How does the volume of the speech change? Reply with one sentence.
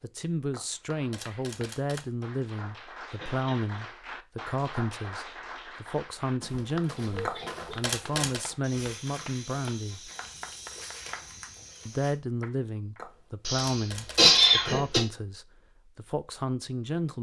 The loudness of the speech stays about the same.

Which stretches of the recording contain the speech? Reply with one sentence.
The speech can be heard from 0.0 to 10.1 s and from 11.8 to 17.1 s.